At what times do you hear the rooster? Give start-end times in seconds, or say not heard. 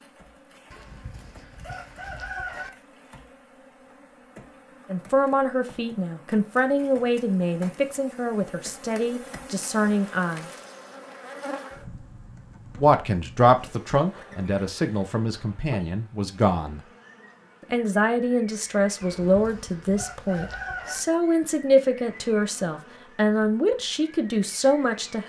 0.7-2.7, 19.0-21.0.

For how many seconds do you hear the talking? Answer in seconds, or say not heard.
17 s.